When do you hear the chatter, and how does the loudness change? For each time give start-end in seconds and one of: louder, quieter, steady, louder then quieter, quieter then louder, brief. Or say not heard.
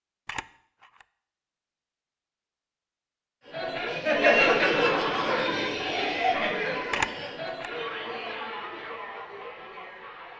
3.5-10.3 quieter.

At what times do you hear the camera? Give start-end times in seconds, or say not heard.
0.2-1.1, 6.9-7.7.